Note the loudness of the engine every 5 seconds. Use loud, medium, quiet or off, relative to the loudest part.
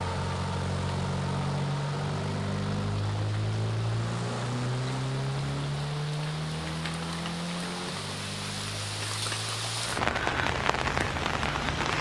loud, loud, medium.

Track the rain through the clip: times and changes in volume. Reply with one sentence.
You can hear the rain from 0.0 to 11.9 s, getting louder.